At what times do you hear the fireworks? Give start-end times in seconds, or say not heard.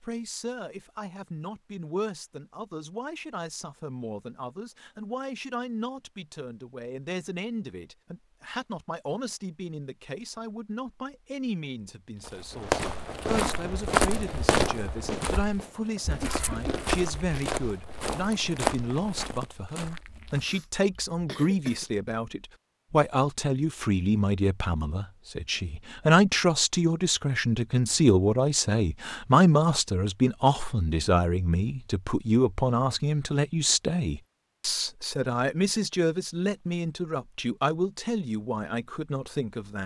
12.5-19.2.